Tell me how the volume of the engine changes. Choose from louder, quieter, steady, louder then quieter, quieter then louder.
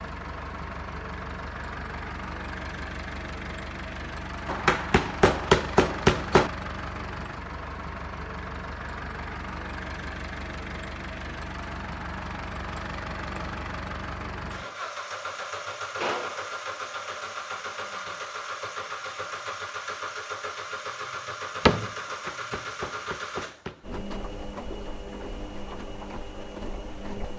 steady.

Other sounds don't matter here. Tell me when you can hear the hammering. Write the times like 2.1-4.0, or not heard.
4.5-6.5, 22.1-24.0.